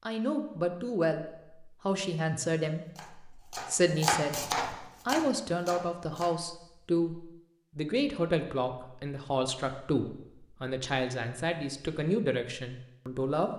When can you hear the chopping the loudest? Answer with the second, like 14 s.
4 s.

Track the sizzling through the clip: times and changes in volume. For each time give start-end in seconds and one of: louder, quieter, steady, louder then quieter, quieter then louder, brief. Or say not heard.
not heard.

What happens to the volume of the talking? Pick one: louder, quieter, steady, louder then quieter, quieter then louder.
steady.